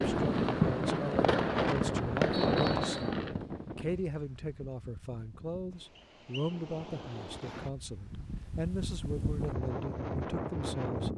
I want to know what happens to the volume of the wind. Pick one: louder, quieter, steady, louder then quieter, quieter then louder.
quieter then louder.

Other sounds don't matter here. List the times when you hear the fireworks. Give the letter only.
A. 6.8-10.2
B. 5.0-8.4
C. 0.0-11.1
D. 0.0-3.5
D.